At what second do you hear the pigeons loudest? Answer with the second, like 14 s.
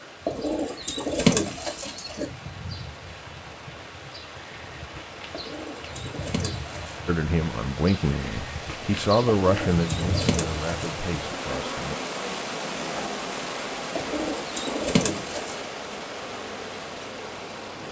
1 s.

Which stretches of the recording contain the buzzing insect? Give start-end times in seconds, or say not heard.
0.0-17.8.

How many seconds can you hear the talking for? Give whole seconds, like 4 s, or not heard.
5 s.